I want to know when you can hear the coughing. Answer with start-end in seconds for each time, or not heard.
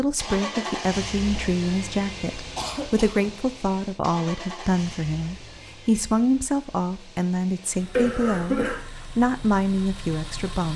2.5-3.3, 7.9-8.8.